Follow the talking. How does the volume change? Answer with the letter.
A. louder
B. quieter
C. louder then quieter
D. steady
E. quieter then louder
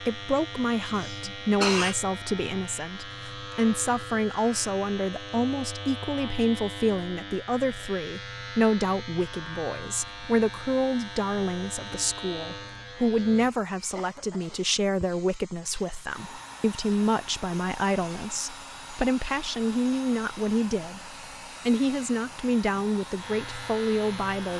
D.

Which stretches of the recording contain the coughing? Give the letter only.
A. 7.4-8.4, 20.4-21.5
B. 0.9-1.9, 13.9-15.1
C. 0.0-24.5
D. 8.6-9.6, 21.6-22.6
B.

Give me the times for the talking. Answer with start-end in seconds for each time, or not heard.
0.0-24.5.